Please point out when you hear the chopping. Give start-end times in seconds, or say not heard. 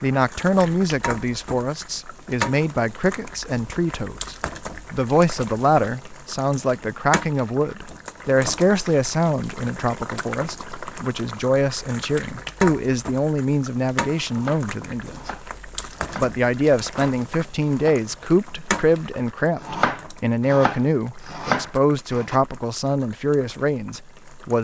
14.2-18.8, 19.6-22.4.